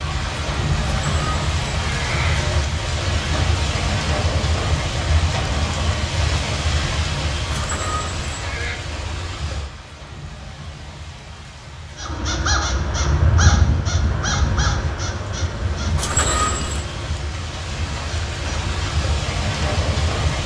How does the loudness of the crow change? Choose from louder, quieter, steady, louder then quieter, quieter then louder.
quieter.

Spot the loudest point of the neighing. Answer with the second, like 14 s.
16 s.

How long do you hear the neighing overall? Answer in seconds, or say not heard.
4 s.